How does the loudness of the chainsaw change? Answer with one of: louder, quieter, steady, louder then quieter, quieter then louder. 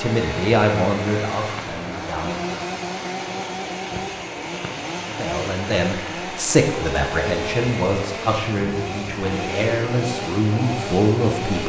steady.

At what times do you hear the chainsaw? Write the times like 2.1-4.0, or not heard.
0.0-11.6.